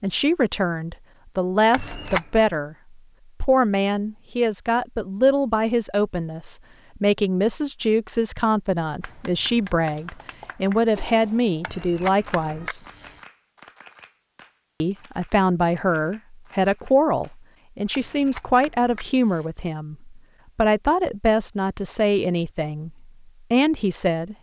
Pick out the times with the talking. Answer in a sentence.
You can hear the talking from 0.0 to 2.8 s, from 3.4 to 12.8 s and from 14.8 to 24.3 s.